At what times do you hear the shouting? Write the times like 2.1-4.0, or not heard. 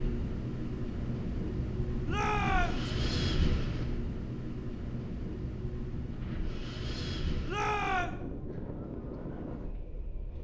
2.0-2.9, 7.5-8.2.